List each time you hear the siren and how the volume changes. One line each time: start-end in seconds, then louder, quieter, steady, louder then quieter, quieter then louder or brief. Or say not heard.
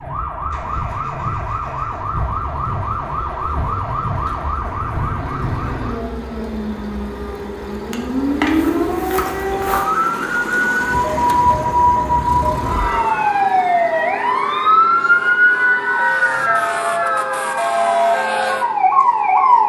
0.0-19.6 louder.